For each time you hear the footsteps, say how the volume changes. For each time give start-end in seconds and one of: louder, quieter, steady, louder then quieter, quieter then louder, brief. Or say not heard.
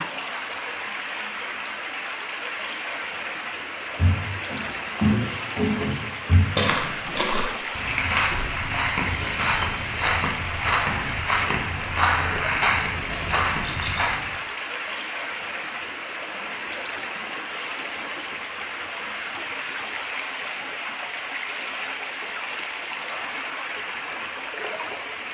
4.0-14.4 steady.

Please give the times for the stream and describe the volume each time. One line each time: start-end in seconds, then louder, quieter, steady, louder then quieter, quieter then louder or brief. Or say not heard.
0.0-25.3 steady.